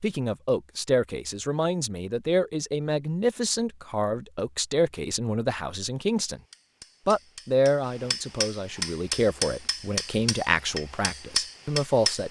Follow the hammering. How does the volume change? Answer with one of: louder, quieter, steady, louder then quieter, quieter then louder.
louder.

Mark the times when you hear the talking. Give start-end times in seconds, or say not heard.
0.0-6.4, 7.0-12.2.